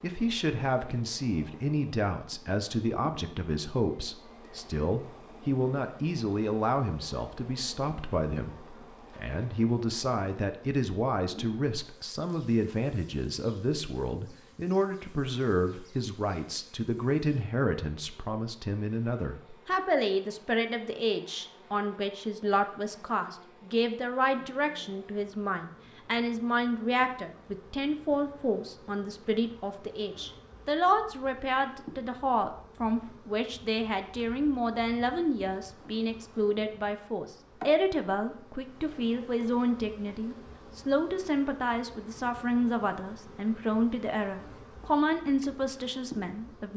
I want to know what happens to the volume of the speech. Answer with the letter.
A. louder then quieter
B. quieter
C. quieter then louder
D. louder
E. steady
E.